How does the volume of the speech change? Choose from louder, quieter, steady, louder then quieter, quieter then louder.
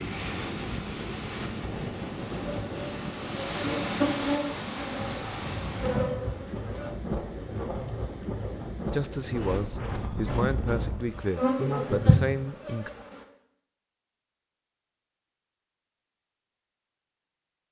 steady.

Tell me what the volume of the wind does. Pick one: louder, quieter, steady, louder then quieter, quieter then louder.
steady.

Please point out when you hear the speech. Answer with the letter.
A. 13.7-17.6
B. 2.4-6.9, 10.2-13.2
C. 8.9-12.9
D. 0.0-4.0
C.